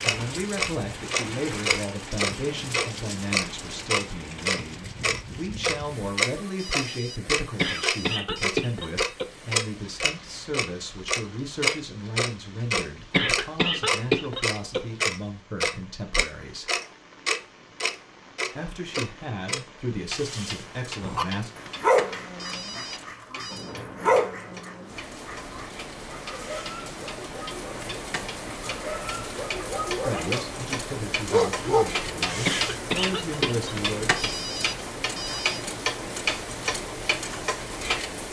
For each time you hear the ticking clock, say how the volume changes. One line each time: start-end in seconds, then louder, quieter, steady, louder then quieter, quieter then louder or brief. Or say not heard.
0.0-38.1 quieter then louder.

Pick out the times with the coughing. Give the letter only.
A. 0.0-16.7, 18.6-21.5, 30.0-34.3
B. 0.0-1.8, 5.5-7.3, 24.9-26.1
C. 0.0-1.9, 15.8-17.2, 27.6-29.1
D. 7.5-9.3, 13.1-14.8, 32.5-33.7
D.